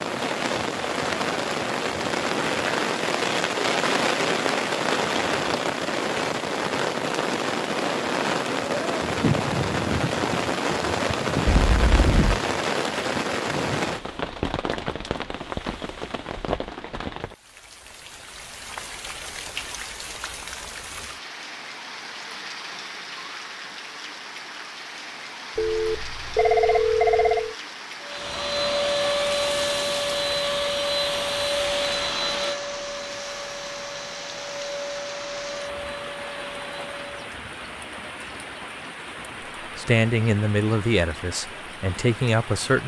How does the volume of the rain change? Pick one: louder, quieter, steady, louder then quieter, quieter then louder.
quieter.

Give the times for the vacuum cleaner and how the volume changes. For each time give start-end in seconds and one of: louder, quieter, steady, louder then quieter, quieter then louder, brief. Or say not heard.
28.0-37.3 quieter.